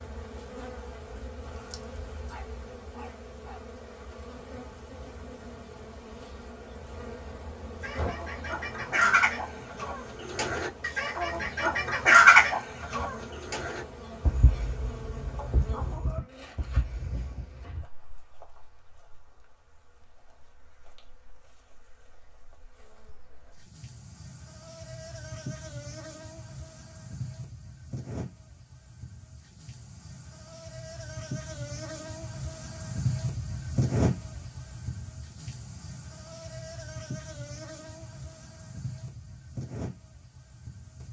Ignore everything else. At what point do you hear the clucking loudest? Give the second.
12 s.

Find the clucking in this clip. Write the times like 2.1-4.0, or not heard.
7.8-17.4.